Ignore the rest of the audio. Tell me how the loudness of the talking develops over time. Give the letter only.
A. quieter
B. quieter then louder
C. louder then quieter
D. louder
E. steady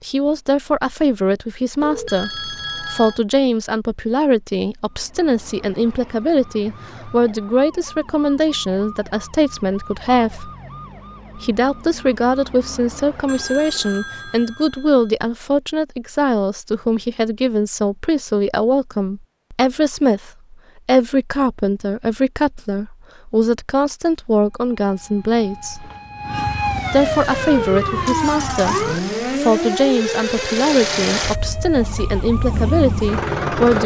E.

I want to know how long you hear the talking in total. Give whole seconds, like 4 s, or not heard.
32 s.